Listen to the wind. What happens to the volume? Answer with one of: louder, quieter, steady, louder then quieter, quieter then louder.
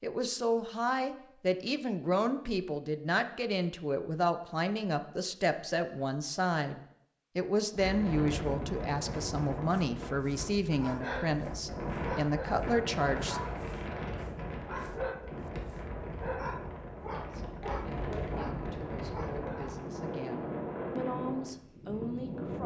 steady.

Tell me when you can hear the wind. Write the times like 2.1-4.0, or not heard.
7.7-22.6.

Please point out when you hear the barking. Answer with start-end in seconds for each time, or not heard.
9.7-19.8.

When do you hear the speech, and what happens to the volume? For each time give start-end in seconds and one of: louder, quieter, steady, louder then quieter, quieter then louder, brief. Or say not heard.
0.0-13.4 steady
17.2-22.6 louder.